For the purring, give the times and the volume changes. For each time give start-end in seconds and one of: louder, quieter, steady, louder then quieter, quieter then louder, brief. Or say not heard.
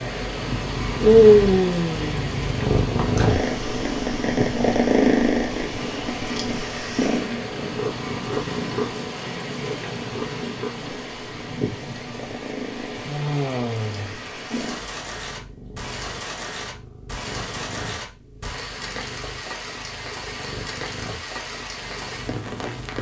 0.0-22.9 quieter.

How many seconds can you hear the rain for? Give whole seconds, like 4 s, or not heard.
23 s.